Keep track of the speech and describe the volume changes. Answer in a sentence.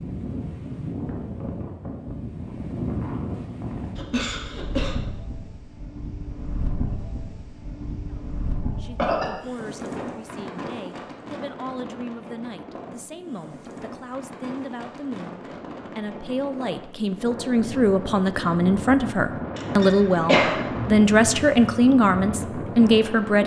The volume of the speech goes up.